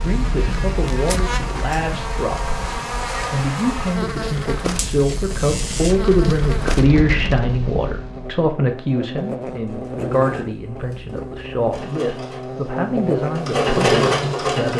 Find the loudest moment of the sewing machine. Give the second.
14 s.